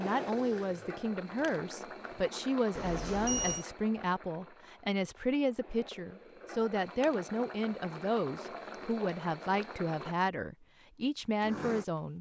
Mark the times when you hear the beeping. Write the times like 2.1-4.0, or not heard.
2.8-3.6.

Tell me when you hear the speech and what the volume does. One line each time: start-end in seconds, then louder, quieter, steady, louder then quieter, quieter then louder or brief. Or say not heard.
0.0-12.1 steady.